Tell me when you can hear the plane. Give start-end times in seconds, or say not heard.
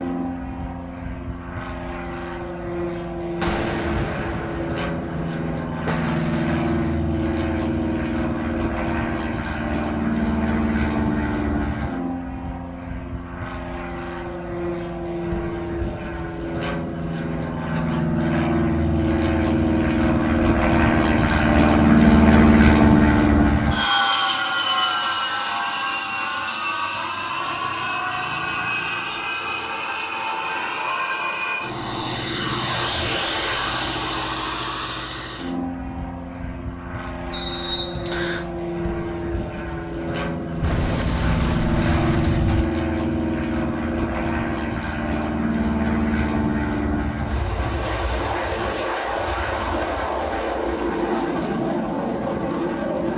0.0-53.1.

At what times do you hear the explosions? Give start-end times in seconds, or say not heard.
3.4-7.0, 40.6-42.6.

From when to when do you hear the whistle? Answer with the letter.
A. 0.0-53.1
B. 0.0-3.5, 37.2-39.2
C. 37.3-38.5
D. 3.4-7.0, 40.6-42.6
C.